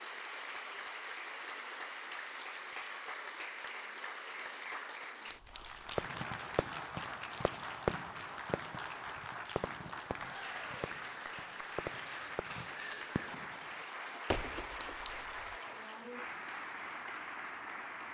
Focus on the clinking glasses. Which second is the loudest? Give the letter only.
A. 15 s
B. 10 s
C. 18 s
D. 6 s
A.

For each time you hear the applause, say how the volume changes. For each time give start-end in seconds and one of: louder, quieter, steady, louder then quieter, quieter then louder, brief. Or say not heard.
0.0-18.0 steady.